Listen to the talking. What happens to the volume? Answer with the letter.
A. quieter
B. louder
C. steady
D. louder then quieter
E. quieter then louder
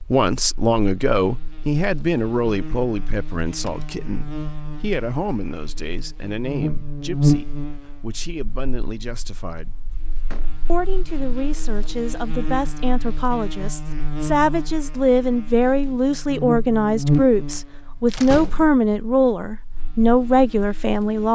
E.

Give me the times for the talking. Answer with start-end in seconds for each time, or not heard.
0.0-9.8, 10.7-21.3.